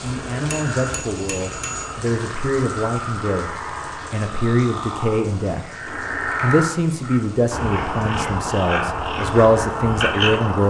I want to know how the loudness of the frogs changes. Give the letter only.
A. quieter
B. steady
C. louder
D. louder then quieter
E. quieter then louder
C.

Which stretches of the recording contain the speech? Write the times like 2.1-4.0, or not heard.
0.0-5.7, 6.4-10.6.